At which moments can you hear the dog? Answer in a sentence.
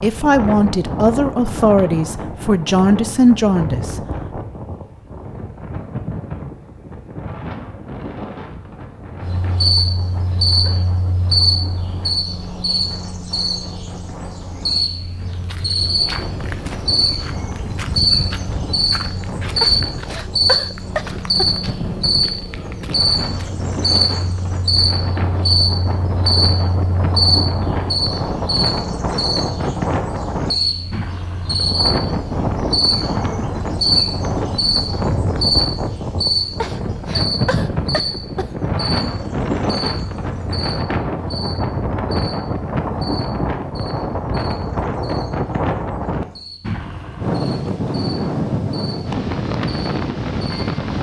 The dog can't be heard in this clip.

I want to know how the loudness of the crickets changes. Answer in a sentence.
The loudness of the crickets goes down.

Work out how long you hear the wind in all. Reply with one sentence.
You can hear the wind for 51 seconds altogether.